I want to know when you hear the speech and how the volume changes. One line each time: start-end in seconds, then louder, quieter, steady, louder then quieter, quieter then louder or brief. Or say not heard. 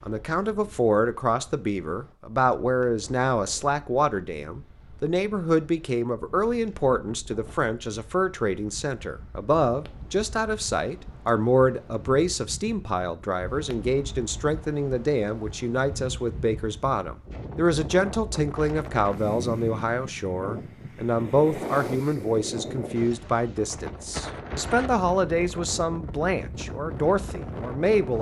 0.0-28.1 steady.